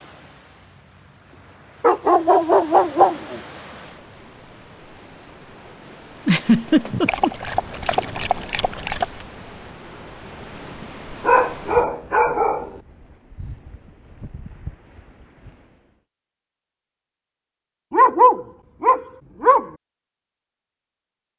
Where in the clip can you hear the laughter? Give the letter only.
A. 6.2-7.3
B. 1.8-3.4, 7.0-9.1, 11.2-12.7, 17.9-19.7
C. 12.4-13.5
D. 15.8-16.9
A.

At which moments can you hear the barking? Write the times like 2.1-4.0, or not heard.
1.8-3.4, 7.0-9.1, 11.2-12.7, 17.9-19.7.